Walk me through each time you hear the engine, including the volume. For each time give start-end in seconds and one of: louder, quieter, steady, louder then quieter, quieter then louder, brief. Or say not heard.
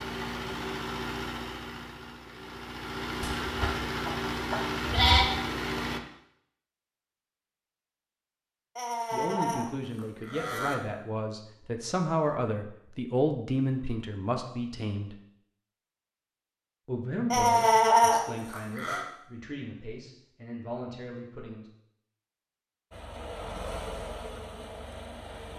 0.0-6.0 quieter then louder
22.9-25.5 brief.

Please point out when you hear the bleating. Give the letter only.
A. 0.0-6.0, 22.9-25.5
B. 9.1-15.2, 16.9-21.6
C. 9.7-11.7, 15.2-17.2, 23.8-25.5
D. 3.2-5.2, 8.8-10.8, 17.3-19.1
D.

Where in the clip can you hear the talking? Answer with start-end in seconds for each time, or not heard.
9.1-15.2, 16.9-21.6.